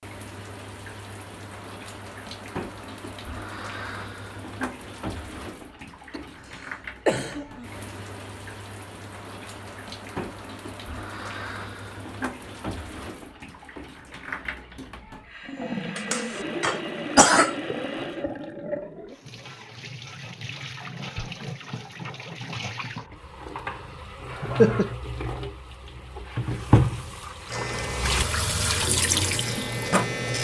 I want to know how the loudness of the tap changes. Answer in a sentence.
The volume of the tap goes up.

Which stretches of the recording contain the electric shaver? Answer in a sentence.
The electric shaver can be heard from 27.4 to 30.3 s.